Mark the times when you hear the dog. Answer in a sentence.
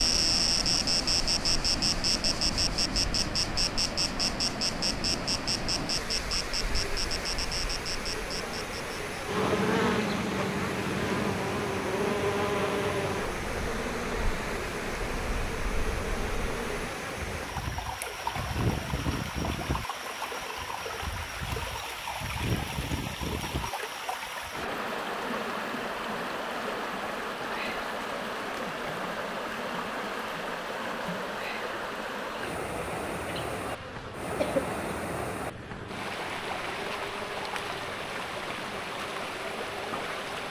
You can't hear the dog here.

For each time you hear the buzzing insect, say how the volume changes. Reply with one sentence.
The buzzing insect can be heard from 0.0 to 40.4 s, getting quieter.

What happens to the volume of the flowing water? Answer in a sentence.
The volume of the flowing water stays about the same.